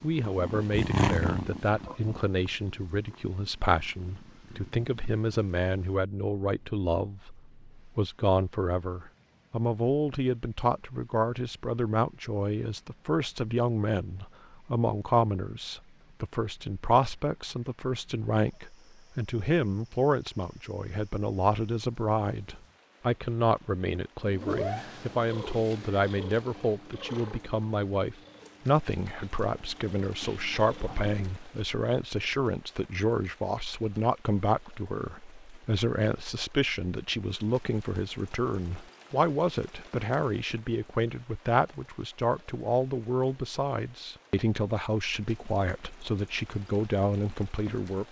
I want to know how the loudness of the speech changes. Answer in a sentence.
The volume of the speech stays about the same.